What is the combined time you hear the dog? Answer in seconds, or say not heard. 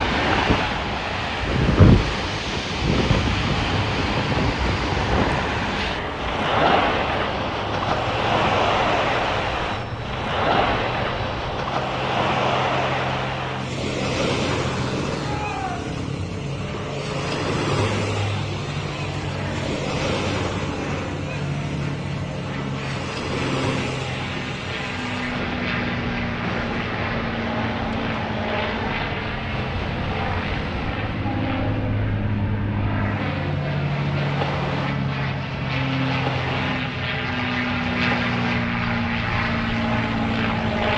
not heard.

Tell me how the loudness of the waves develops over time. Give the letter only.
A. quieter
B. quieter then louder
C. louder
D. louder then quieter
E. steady
A.